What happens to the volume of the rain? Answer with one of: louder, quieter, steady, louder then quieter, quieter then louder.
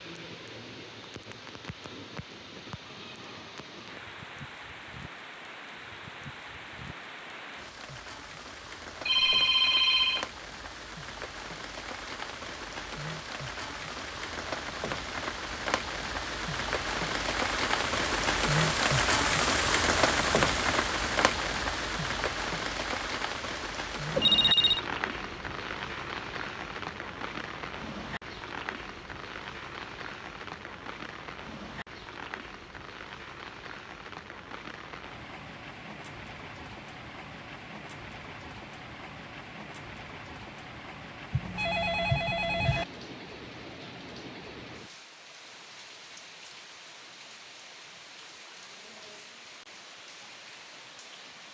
louder then quieter.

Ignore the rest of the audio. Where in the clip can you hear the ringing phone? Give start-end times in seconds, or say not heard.
9.1-10.2, 24.1-24.8, 41.3-42.9.